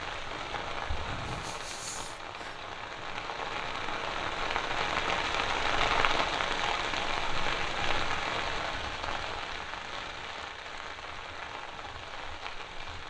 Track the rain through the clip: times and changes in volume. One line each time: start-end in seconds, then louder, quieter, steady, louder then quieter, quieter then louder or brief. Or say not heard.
0.0-13.0 louder then quieter.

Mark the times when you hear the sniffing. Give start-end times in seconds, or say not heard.
1.2-2.6.